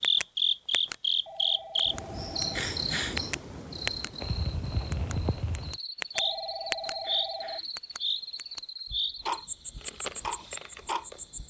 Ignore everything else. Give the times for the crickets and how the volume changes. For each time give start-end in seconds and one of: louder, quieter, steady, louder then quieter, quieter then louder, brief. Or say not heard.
0.0-11.4 quieter.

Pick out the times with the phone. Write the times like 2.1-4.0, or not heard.
1.2-2.6, 6.2-7.6.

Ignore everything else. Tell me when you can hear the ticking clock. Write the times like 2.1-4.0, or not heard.
0.0-0.9, 1.8-4.1, 4.9-7.0, 7.8-11.4.